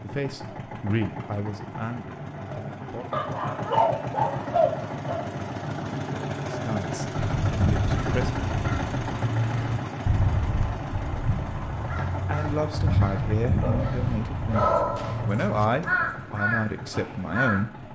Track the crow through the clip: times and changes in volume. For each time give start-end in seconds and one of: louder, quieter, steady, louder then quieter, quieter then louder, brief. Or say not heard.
7.2-17.6 steady.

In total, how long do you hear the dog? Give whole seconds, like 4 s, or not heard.
4 s.